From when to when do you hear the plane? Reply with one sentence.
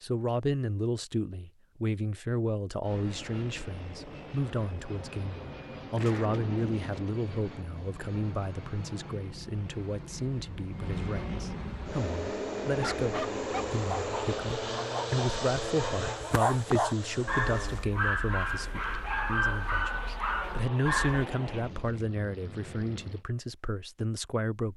The plane can be heard from 2.8 to 23.2 s.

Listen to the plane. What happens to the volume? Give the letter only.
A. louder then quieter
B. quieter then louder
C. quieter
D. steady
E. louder
A.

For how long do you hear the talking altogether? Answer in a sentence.
You can hear the talking for 25 seconds altogether.